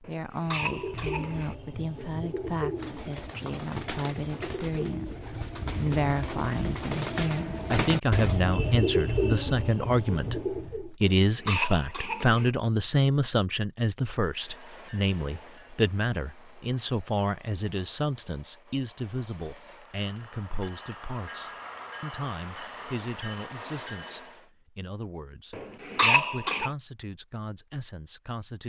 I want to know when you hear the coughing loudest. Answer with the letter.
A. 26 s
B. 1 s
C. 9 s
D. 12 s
A.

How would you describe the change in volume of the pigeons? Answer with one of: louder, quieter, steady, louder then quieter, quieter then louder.
louder.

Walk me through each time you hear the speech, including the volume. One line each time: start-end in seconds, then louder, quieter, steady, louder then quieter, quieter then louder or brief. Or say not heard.
0.0-28.6 louder then quieter.